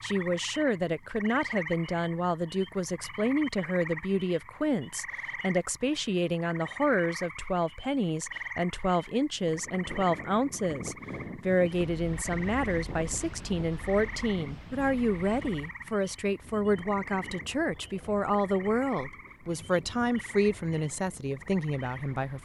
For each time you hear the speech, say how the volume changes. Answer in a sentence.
The speech can be heard from 0.0 to 22.3 s, at a steady volume.